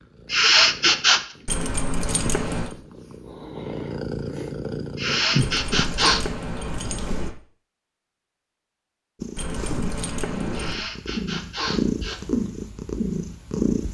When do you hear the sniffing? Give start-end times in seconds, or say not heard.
0.3-1.2, 5.0-6.2, 10.5-12.2.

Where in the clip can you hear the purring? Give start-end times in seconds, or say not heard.
0.0-7.3, 9.2-13.8.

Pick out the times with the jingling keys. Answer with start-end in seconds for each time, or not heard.
1.4-2.8, 5.3-7.3, 9.3-10.8.